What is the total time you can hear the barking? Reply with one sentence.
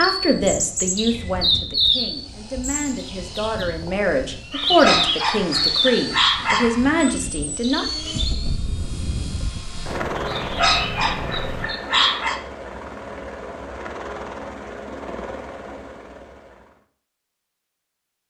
The barking can be heard for 5 seconds in total.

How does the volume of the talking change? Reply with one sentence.
The loudness of the talking goes down, then up.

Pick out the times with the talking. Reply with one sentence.
You can hear the talking from 0.0 to 7.8 s.